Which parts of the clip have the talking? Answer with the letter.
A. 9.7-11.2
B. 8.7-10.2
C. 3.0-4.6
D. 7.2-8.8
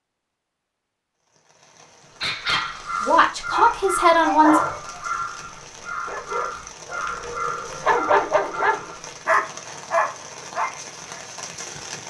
C.